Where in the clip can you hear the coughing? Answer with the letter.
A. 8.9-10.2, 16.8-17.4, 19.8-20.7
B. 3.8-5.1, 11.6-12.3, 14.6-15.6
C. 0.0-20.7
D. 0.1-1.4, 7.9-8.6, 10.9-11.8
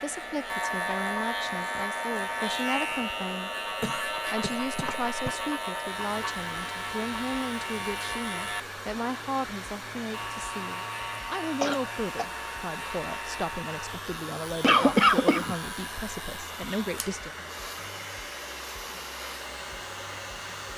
B.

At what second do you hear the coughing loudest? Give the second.
15 s.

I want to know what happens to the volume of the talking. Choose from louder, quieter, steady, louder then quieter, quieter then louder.
steady.